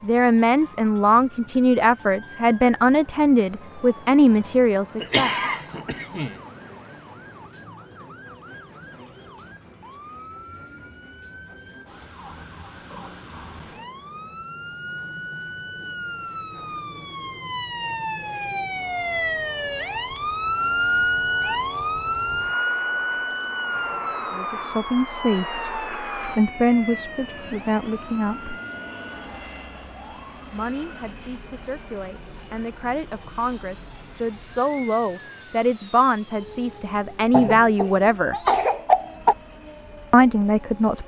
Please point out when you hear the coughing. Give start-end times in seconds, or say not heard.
5.0-6.3, 37.3-39.4.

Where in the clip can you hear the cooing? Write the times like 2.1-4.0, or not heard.
not heard.